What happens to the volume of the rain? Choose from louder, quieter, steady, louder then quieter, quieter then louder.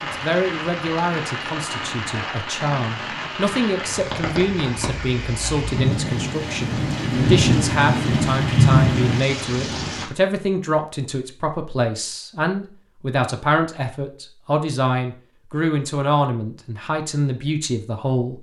louder.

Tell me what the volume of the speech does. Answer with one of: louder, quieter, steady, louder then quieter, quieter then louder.
steady.